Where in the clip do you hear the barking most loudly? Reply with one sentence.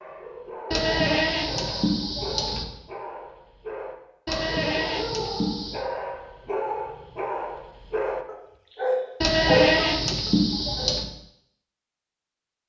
The volume of the barking peaks at 10 seconds.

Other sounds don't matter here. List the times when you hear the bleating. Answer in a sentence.
The bleating can be heard from 0.7 to 2.6 s, from 4.2 to 5.8 s and from 9.2 to 11.1 s.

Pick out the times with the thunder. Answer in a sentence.
The thunder can't be heard in this clip.